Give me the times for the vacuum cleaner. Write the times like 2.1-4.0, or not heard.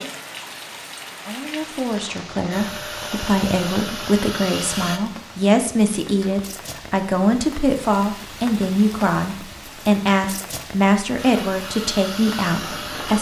2.5-5.0, 11.2-13.1.